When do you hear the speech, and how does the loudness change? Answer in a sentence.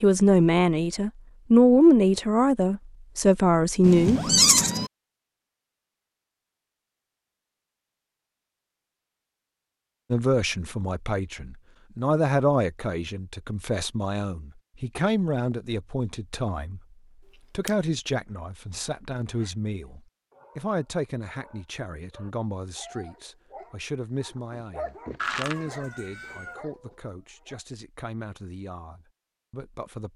The speech can be heard from 0.0 to 4.2 s, getting louder then quieter; and from 10.1 to 30.1 s, getting quieter.